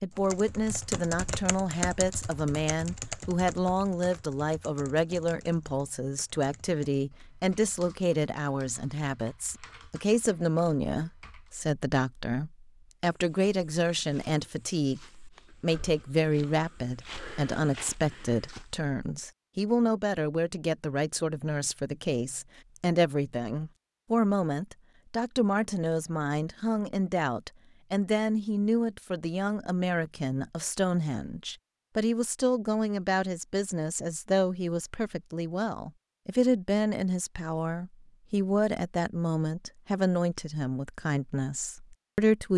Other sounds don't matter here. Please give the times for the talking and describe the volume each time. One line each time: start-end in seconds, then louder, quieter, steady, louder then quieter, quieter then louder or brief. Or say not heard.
0.0-42.5 steady.